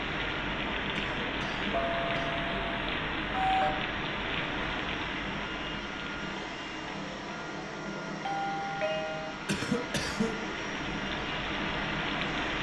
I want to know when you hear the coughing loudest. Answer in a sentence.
The volume of the coughing peaks at 10 seconds.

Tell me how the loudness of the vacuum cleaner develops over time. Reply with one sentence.
The volume of the vacuum cleaner goes up.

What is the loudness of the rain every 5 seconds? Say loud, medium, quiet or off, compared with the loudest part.
loud, medium, loud.